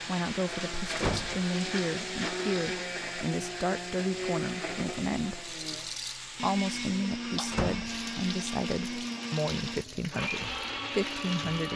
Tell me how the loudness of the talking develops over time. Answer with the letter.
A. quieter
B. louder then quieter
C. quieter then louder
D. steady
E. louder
D.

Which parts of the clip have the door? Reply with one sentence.
The door can be heard from 0.9 to 1.4 s and from 7.5 to 8.0 s.